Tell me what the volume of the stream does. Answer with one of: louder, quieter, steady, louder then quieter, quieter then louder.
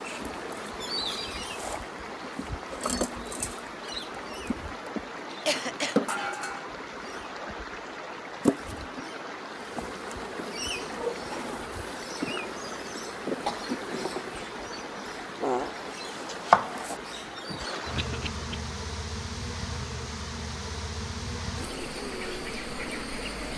steady.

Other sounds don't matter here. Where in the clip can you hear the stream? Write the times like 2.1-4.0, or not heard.
0.0-23.5.